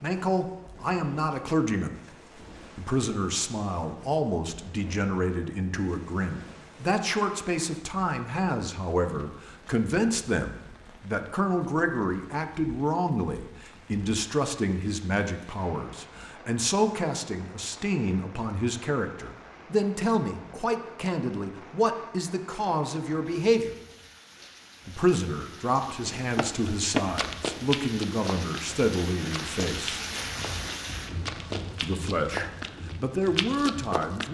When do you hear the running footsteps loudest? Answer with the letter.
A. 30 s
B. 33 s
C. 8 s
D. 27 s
D.